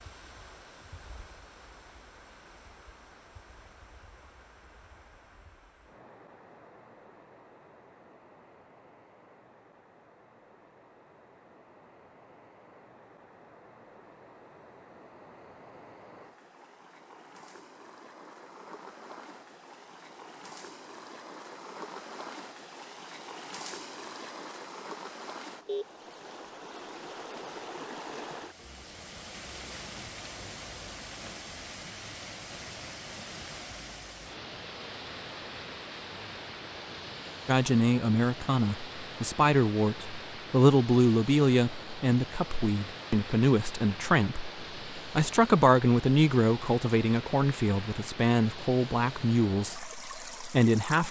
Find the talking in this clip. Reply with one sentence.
The talking can be heard from 37.5 to 51.0 s.